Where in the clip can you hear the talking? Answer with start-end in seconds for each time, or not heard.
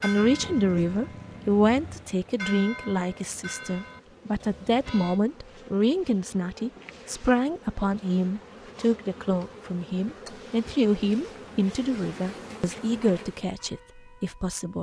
0.0-14.7.